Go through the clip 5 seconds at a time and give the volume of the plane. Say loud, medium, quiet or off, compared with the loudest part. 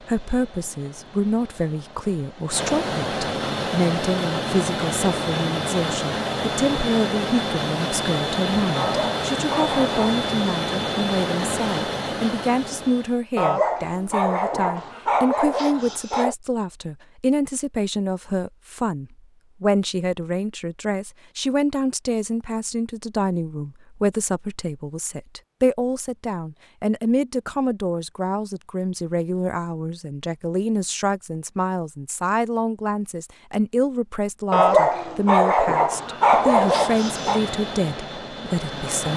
loud, loud, loud, off, off, off, off, medium.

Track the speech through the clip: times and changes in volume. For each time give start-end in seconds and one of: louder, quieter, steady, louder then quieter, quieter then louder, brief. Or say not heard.
0.1-39.1 steady.